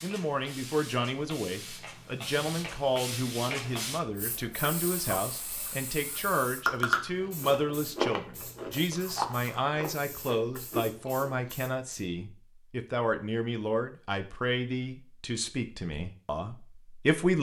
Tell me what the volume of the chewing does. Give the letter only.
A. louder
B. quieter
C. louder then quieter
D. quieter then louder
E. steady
D.